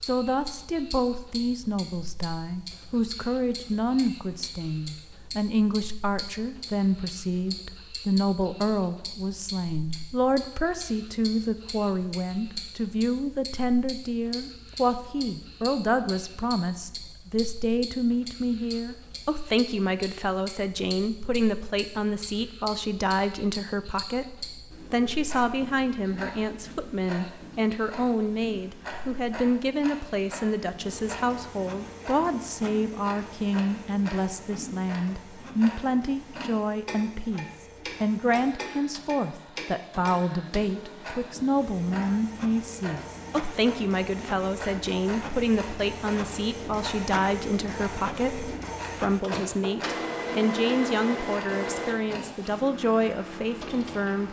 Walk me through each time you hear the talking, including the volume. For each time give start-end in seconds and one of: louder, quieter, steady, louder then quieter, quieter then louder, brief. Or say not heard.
0.1-54.2 steady.